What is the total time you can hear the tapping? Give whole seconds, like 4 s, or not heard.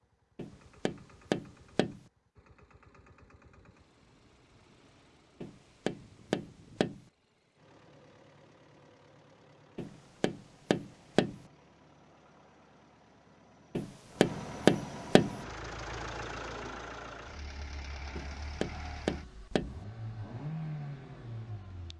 8 s.